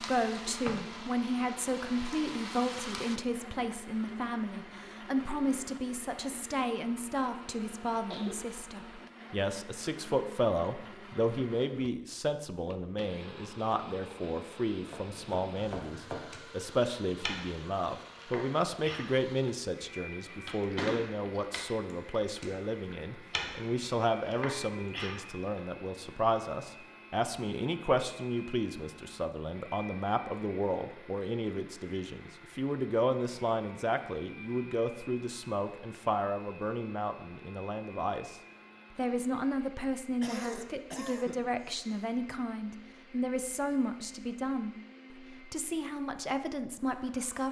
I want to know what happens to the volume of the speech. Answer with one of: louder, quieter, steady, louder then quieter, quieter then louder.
steady.